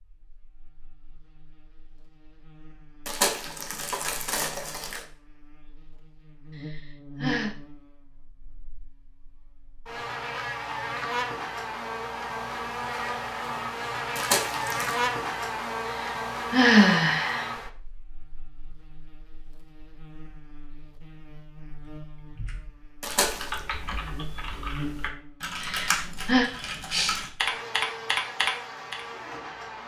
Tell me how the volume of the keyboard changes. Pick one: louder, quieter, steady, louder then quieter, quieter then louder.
louder.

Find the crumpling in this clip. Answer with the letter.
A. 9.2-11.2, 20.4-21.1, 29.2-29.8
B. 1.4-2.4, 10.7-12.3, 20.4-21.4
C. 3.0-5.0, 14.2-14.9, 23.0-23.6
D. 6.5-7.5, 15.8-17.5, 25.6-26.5
C.